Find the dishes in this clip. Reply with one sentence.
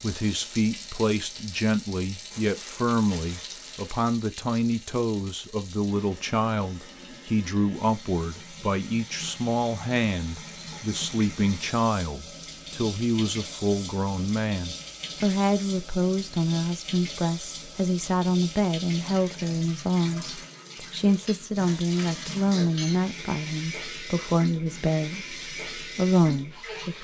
The dishes can't be heard in this clip.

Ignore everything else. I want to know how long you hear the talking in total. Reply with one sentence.
The talking can be heard for 27 seconds in total.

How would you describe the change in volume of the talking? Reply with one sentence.
The loudness of the talking stays about the same.